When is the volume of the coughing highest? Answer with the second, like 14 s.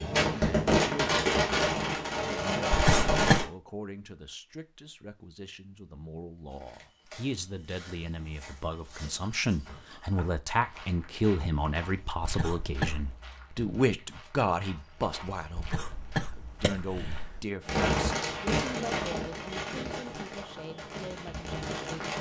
3 s.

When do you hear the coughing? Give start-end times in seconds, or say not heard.
2.7-3.5, 12.2-13.2, 15.6-17.4.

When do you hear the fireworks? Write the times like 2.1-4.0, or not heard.
0.0-3.5, 17.6-22.1.